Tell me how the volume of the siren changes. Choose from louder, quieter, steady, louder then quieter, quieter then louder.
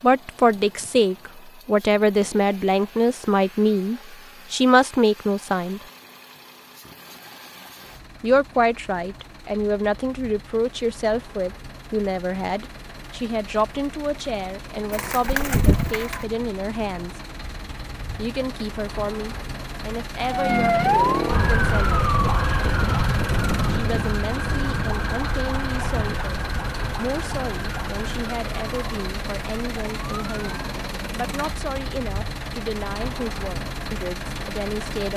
quieter.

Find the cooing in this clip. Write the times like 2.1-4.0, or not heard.
14.9-16.2.